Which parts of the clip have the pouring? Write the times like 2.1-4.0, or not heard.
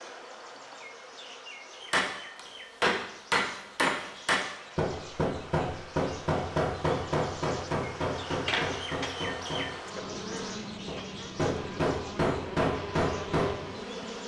not heard.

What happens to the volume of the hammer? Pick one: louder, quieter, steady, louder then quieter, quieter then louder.
quieter then louder.